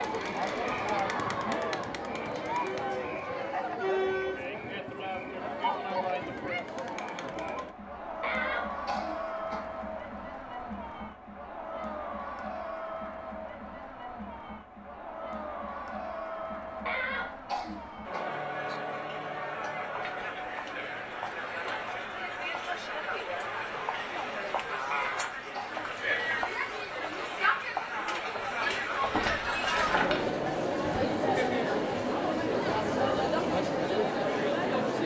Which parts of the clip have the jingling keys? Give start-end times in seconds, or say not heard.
29.0-30.3.